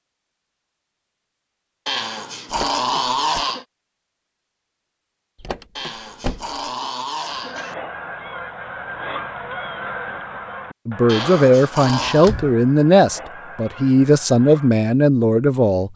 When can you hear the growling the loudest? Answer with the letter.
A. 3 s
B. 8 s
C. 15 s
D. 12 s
A.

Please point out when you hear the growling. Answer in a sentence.
You can hear the growling from 1.9 to 3.6 s, from 5.8 to 7.8 s and from 11.1 to 12.3 s.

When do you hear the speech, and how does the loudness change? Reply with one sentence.
You can hear the speech from 10.8 to 15.9 s, at a steady volume.